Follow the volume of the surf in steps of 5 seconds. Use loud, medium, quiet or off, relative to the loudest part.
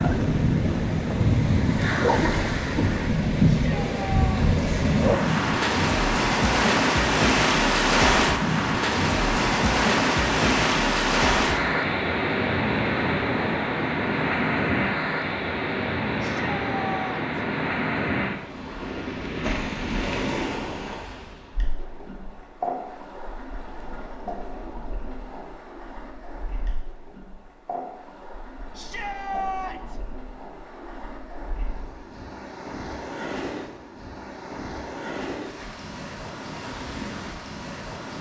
loud, loud, loud, medium, quiet, quiet, quiet, quiet.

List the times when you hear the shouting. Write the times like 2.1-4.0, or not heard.
3.5-4.4, 16.2-17.4, 28.8-30.0.